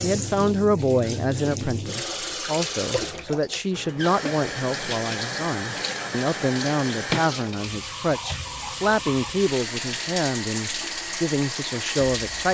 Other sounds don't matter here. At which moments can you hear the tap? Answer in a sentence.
You can hear the tap from 0.0 to 12.4 s.